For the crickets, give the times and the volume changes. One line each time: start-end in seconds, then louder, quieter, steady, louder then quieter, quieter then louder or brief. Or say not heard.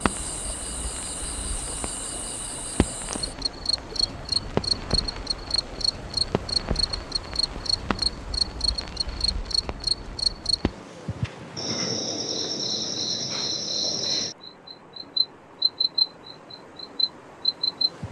0.0-18.0 louder.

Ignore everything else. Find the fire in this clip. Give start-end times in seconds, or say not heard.
0.0-10.8.